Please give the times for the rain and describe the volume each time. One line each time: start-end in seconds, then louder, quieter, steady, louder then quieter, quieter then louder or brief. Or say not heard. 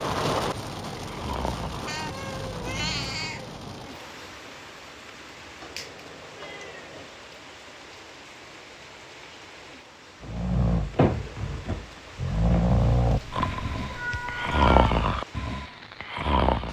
0.0-16.6 quieter.